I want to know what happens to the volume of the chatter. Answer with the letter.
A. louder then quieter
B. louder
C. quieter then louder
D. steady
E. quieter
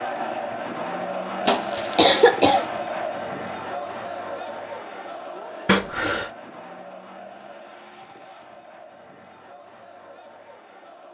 E.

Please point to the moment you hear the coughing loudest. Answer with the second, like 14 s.
2 s.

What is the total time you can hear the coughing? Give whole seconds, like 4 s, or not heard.
2 s.